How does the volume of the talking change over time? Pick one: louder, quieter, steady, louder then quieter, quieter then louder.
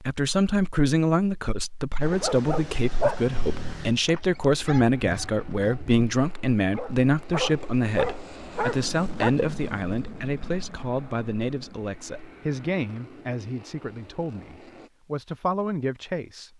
quieter.